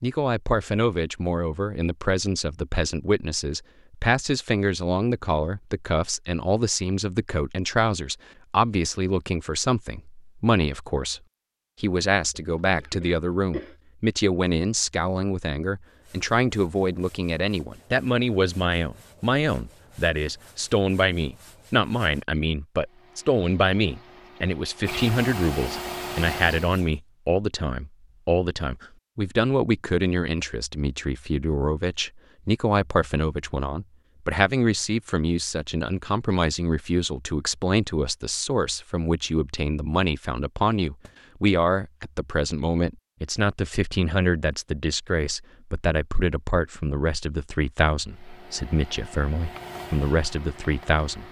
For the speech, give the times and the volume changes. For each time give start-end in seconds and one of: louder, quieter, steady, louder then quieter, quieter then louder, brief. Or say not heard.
0.0-11.2 steady
11.8-51.2 steady.